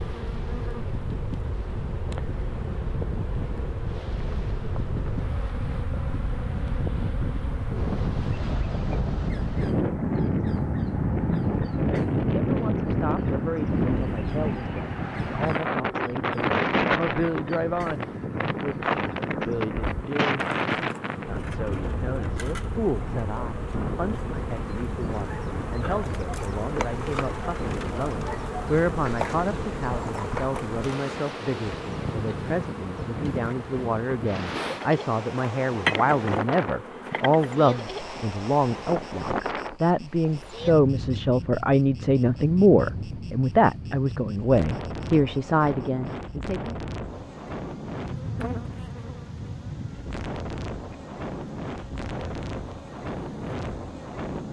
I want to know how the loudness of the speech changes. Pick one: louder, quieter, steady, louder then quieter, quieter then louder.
louder.